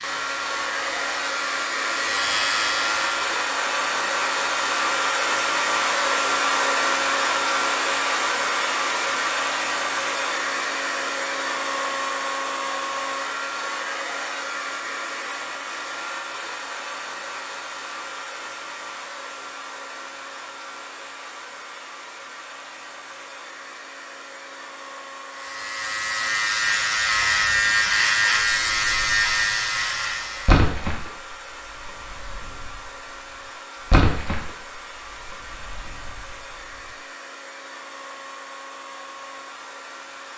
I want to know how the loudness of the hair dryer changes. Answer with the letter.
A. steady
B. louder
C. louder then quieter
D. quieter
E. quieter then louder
D.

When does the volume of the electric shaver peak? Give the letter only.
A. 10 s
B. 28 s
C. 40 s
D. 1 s
B.